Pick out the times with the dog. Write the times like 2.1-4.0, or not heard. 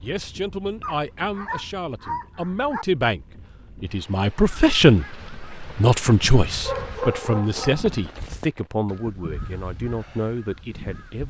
0.8-2.9, 6.5-8.3.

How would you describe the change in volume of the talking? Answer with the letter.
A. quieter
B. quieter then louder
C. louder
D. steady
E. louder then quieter
E.